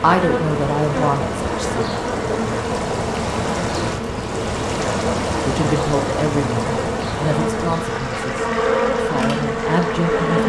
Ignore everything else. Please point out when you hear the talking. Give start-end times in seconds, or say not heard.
0.0-1.9, 5.5-10.4.